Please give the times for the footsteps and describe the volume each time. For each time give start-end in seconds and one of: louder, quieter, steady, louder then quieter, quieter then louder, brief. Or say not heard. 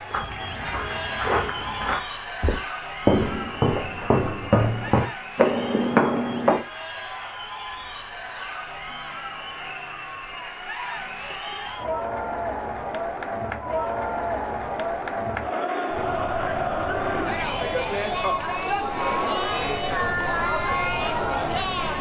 0.1-6.6 louder.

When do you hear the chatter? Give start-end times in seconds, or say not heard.
0.0-21.9.